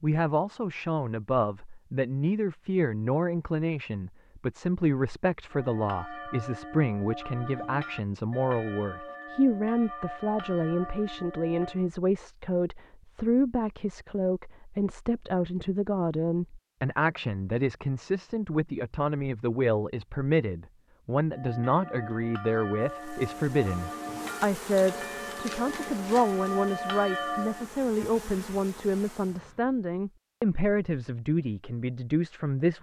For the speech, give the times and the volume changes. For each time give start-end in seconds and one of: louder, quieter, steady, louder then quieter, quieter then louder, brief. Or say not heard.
0.0-32.7 steady.